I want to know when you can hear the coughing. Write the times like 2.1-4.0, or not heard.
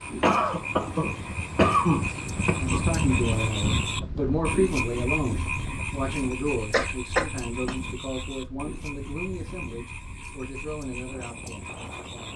0.2-2.9, 6.7-7.8.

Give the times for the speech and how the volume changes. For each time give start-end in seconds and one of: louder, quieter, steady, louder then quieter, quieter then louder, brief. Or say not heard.
2.5-12.3 quieter.